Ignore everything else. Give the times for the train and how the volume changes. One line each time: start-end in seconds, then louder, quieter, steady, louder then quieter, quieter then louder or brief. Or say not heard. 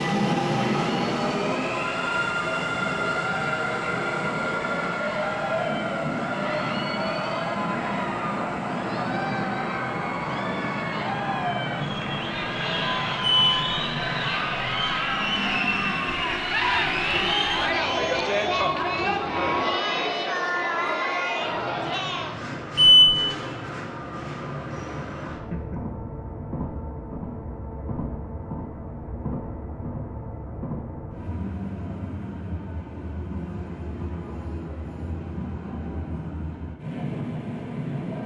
0.0-38.2 quieter.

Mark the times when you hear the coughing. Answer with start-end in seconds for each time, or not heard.
not heard.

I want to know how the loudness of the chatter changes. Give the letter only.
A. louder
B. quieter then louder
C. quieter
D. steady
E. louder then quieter
A.